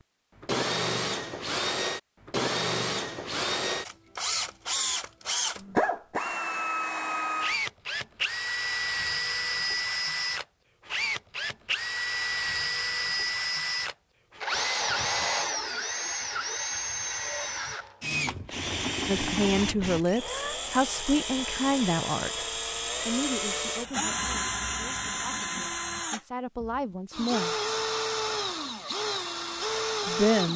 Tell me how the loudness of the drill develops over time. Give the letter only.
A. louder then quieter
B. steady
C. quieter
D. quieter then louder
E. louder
B.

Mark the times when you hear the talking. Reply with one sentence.
You can hear the talking from 19.1 to 22.4 s, from 23.1 to 27.6 s and from 30.1 to 30.5 s.